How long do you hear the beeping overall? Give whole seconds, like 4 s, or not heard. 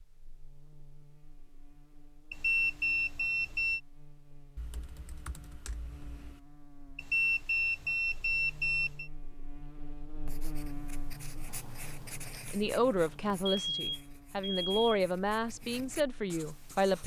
5 s.